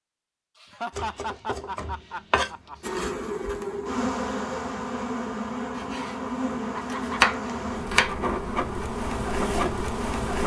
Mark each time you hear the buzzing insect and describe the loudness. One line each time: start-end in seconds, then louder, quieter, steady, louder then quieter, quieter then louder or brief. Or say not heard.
2.8-10.4 steady.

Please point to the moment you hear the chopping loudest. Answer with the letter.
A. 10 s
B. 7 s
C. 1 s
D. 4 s
B.